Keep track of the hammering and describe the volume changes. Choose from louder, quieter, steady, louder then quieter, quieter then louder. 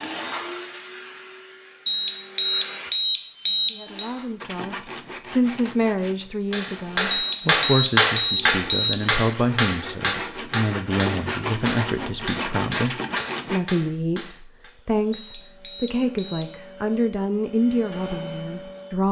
quieter.